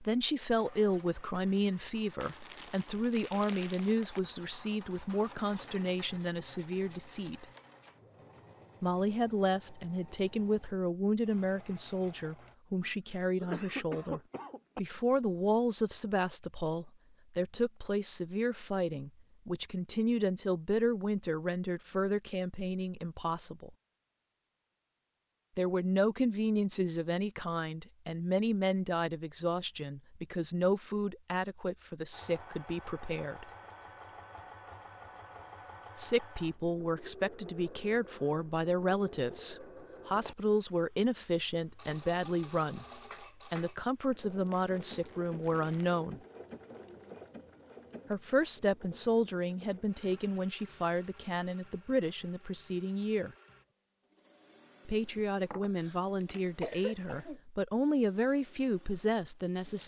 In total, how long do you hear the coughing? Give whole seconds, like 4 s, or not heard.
4 s.